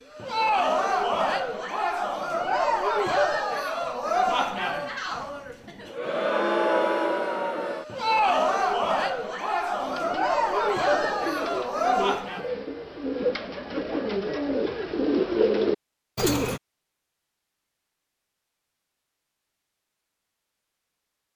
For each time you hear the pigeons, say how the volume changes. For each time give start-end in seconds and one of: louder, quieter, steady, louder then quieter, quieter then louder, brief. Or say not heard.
9.8-16.6 louder.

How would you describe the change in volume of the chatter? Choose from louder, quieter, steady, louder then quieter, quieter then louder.
steady.